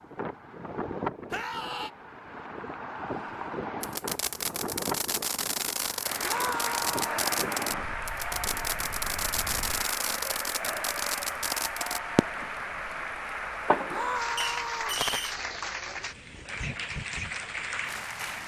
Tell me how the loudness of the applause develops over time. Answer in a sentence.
The volume of the applause stays about the same.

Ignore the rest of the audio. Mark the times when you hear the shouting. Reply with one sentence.
The shouting can be heard from 1.3 to 1.9 s, from 6.2 to 7.2 s and from 13.8 to 15.1 s.